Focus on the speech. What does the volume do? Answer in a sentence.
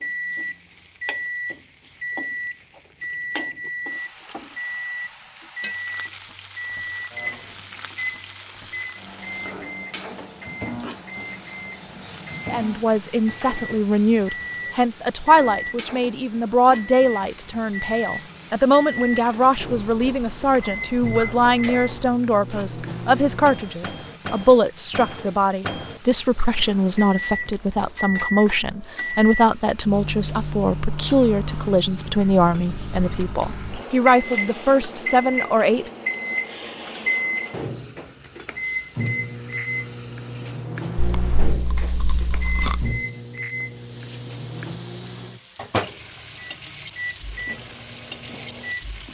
The volume of the speech stays about the same.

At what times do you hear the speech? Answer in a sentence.
You can hear the speech from 12.5 to 35.9 s.